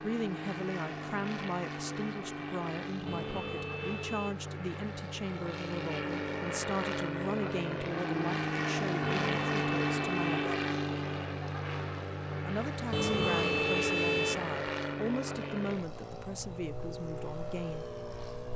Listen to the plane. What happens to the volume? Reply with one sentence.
The loudness of the plane goes up, then down.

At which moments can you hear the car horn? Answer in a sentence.
The car horn can be heard from 3.0 to 4.3 s, from 9.2 to 10.3 s and from 12.9 to 14.4 s.